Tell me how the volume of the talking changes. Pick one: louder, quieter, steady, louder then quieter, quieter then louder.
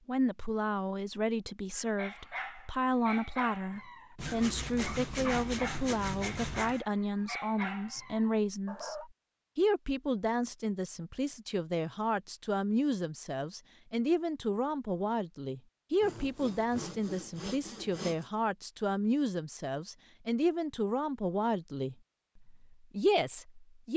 steady.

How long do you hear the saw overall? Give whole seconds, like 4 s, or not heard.
5 s.